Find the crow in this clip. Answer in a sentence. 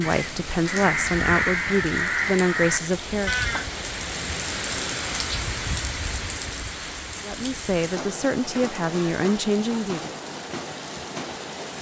You can hear the crow from 0.0 to 3.9 s.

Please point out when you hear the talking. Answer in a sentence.
You can hear the talking from 0.0 to 3.5 s and from 7.2 to 10.2 s.